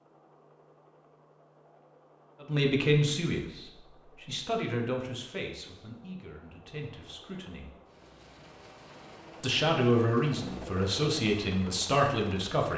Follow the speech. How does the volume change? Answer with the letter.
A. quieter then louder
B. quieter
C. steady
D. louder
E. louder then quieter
A.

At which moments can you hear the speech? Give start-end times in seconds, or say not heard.
2.4-7.7, 9.4-12.7.